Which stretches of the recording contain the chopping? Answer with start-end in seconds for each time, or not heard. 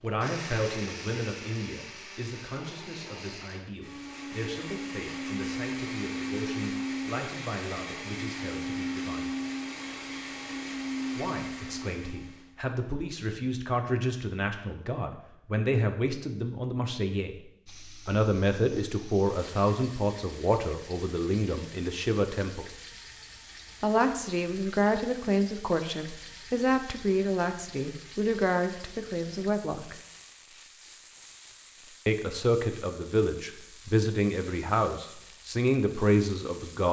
not heard.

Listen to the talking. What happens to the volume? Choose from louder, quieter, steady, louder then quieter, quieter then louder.
louder.